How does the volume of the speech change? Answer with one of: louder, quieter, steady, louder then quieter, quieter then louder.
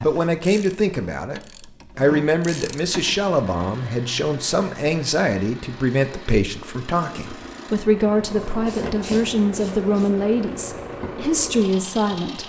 steady.